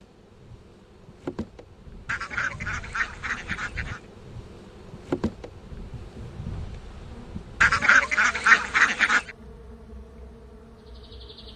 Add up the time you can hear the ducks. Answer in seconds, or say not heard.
4 s.